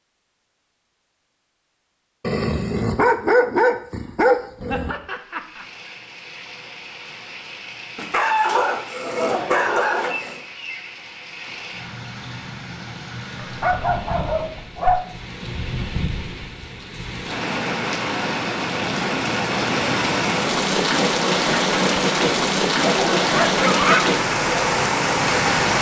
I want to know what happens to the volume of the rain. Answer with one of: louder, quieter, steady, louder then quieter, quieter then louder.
louder.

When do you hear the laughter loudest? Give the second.
24 s.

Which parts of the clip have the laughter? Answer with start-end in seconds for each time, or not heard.
4.7-5.7, 9.0-10.2, 22.9-24.1.